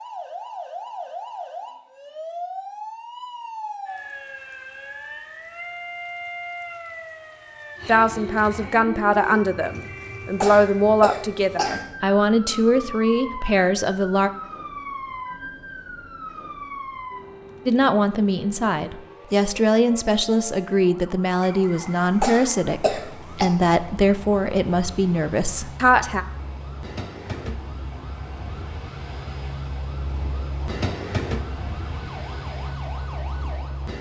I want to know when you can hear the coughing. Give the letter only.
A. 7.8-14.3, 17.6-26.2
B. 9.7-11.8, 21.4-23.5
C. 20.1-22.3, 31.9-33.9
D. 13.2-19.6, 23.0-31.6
B.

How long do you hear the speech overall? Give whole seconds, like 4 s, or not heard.
15 s.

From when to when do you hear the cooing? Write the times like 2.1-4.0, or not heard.
not heard.